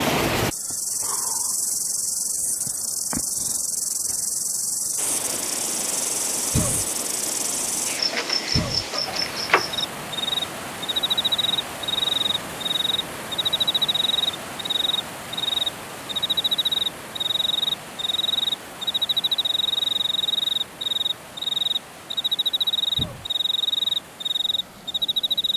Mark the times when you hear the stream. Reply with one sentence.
You can hear the stream from 5.0 to 25.5 s.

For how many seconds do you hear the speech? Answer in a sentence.
The speech can't be heard in this clip.